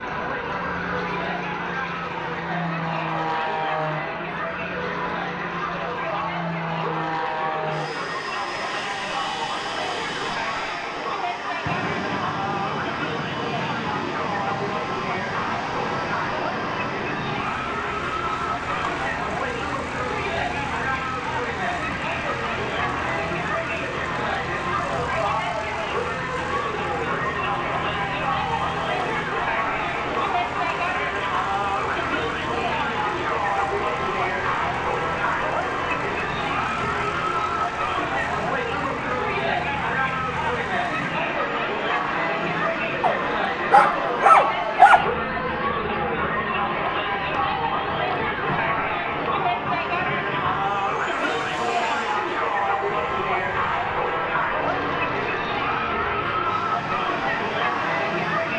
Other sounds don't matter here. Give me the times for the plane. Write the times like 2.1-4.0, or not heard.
0.0-58.5.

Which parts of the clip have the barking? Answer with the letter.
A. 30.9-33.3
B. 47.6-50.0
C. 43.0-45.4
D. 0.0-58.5
C.